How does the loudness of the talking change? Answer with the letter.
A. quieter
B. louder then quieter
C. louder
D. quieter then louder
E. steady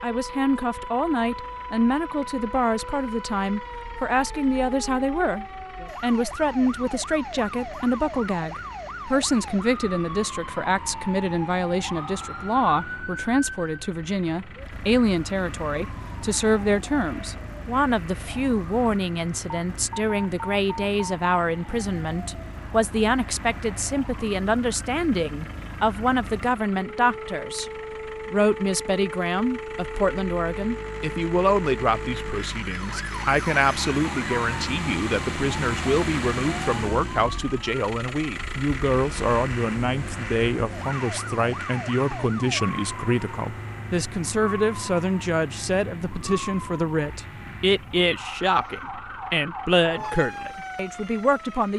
E.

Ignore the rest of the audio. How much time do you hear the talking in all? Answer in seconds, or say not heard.
51 s.